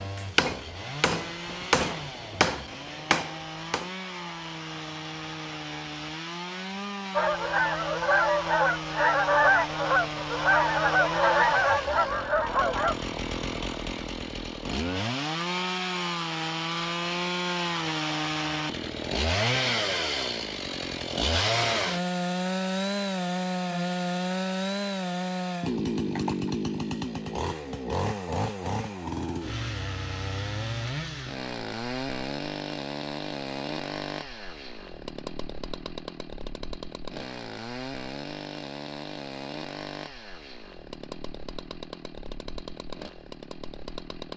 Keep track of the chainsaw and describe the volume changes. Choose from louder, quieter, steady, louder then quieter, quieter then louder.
louder then quieter.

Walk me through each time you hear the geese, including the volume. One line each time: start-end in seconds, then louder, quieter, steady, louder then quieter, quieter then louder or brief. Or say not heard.
7.1-12.9 steady.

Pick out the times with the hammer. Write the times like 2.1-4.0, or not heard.
0.0-3.9.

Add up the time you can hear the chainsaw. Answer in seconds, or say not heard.
44 s.